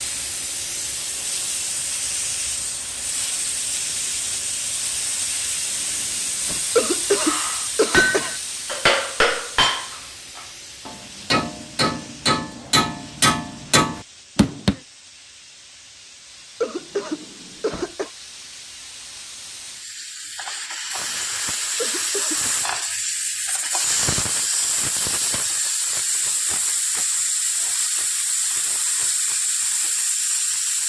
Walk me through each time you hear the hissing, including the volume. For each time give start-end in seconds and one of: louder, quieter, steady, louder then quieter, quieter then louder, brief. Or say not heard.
0.0-30.8 quieter then louder.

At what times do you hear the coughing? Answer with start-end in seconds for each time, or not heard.
6.8-8.3, 16.6-18.1, 21.8-22.4.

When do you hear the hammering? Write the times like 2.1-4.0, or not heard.
7.2-14.8.